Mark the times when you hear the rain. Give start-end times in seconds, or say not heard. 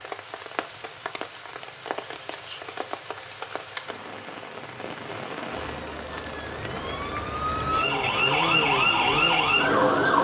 0.0-10.1.